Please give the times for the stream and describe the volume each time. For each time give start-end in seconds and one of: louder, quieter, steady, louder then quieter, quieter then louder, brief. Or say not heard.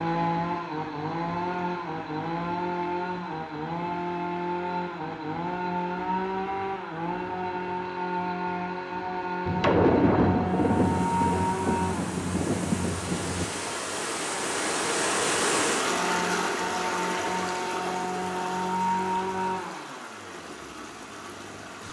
10.4-21.8 louder then quieter.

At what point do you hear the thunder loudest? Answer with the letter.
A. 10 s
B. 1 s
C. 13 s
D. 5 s
A.